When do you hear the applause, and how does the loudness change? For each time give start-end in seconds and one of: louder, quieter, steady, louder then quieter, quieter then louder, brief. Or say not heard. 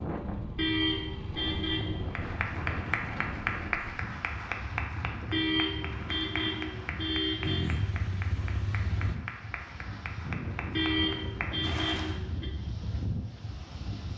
2.1-12.2 quieter.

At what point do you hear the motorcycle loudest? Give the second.
8 s.